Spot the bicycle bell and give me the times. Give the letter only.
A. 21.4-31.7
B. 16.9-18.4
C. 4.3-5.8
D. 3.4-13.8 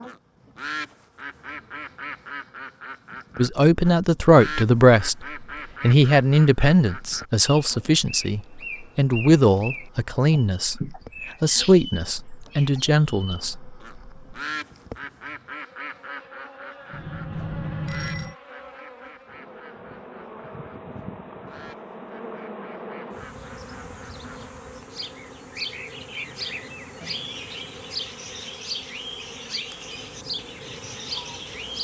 B.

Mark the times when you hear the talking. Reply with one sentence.
The talking can be heard from 3.4 to 13.8 s.